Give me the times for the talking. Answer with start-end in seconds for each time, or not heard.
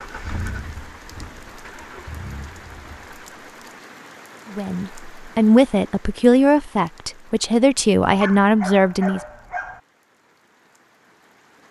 4.5-9.2.